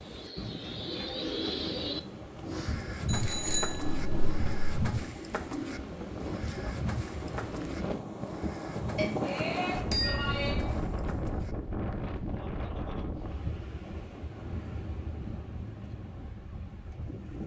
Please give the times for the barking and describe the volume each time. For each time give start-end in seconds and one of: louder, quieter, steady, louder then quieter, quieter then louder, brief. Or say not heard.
not heard.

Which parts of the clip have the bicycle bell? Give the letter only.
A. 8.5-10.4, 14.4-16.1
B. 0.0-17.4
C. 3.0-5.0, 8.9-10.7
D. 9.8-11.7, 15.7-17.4
C.